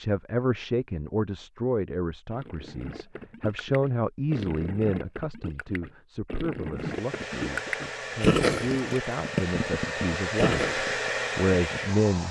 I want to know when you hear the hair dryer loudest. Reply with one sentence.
The loudest moment of the hair dryer is at 11 seconds.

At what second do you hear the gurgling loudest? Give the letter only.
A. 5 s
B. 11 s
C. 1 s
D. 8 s
D.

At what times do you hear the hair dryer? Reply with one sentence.
The hair dryer can be heard from 6.8 to 12.2 s.